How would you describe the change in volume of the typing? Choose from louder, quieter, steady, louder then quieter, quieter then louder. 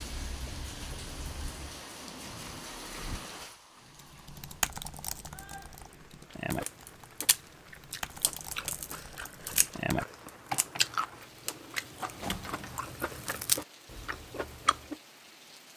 quieter then louder.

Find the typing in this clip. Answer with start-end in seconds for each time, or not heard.
4.0-11.0.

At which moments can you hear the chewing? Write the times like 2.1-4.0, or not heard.
6.5-14.9.